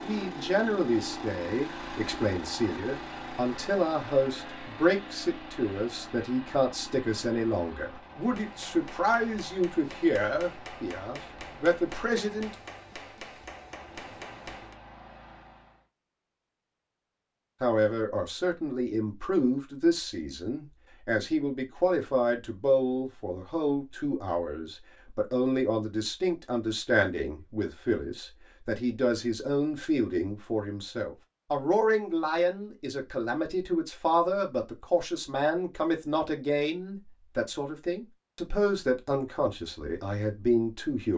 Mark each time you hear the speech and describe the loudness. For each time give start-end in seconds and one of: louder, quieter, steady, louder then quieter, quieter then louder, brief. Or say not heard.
0.0-12.6 steady
17.6-41.1 steady.